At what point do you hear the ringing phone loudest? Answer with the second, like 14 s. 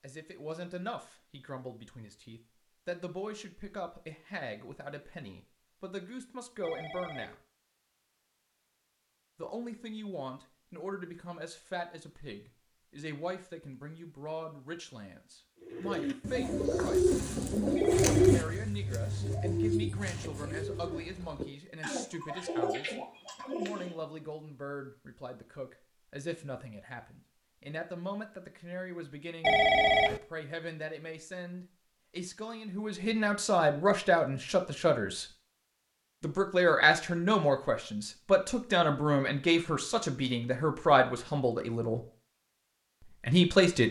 30 s.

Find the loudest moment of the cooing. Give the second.
18 s.